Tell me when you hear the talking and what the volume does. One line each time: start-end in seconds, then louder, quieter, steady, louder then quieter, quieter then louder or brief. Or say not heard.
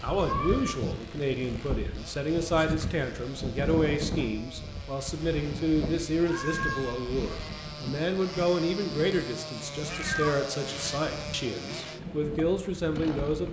0.0-13.4 steady.